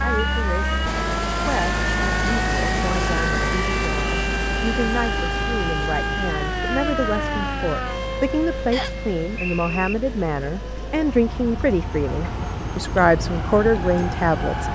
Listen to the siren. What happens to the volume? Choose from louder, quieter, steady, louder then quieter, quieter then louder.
quieter then louder.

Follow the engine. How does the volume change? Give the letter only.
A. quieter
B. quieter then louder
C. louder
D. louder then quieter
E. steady
A.